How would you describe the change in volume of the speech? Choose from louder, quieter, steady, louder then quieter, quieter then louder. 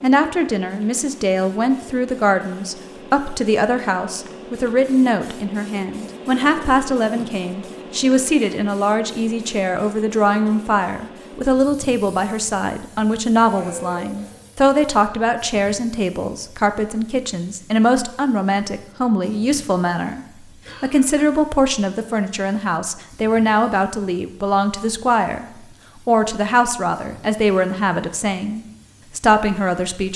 steady.